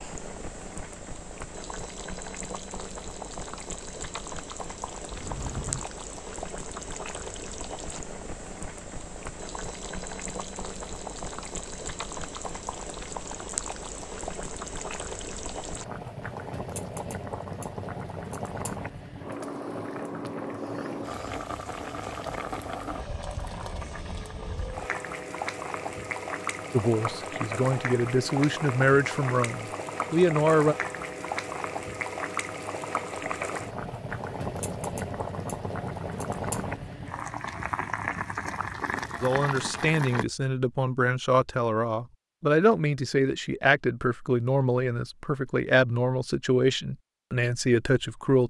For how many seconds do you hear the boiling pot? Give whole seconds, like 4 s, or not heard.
40 s.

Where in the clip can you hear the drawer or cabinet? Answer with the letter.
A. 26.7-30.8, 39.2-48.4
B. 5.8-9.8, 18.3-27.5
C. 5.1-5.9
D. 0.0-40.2
C.